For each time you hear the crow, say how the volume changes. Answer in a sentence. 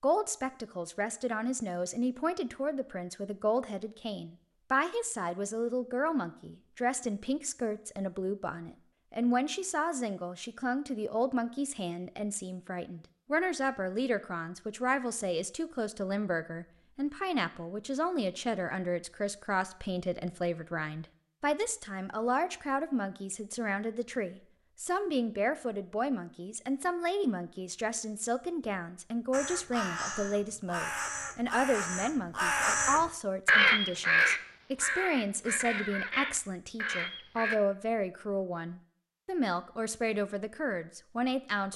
You can hear the crow from 29.3 to 37.6 s, getting louder then quieter.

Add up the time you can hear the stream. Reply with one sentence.
You can't hear the stream here.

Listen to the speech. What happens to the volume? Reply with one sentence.
The loudness of the speech stays about the same.